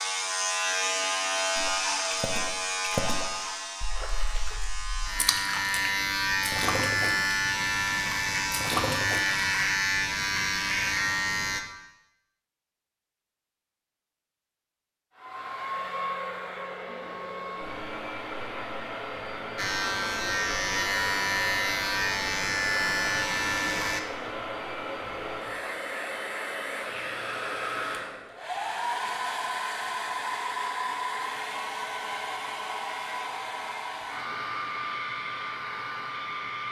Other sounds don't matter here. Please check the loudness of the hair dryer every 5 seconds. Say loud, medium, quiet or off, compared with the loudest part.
off, off, off, loud, loud, loud, loud, loud.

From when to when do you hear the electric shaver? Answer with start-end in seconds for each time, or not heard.
0.0-11.6, 19.6-24.0.